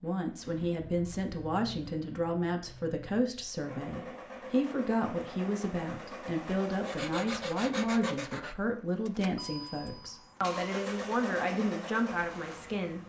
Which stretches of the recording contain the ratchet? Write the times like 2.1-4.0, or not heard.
not heard.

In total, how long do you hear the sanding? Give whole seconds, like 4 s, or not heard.
2 s.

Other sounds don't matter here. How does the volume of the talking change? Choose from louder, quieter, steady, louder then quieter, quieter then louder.
steady.